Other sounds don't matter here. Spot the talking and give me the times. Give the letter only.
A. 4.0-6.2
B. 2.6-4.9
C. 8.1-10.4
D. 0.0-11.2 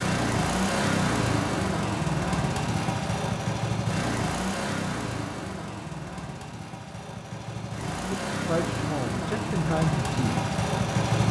C.